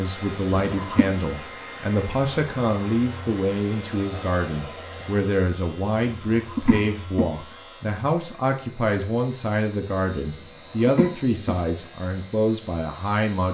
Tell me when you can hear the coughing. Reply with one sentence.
The coughing can be heard from 0.5 to 1.1 s, from 6.3 to 7.2 s and from 10.4 to 11.6 s.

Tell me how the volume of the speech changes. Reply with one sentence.
The loudness of the speech stays about the same.